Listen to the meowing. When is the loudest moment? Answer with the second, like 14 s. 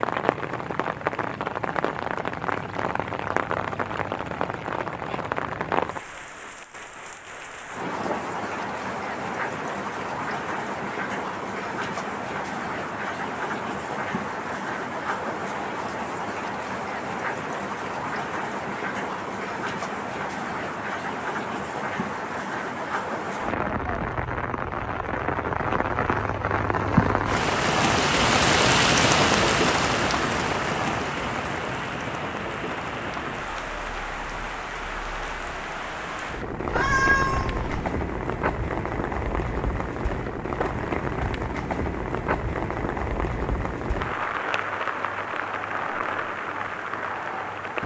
37 s.